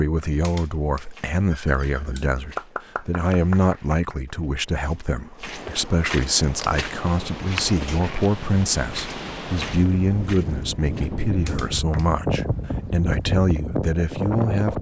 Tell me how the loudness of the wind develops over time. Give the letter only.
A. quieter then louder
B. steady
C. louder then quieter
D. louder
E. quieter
D.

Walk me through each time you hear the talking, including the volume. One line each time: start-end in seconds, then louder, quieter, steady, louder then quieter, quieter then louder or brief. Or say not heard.
0.0-14.7 steady.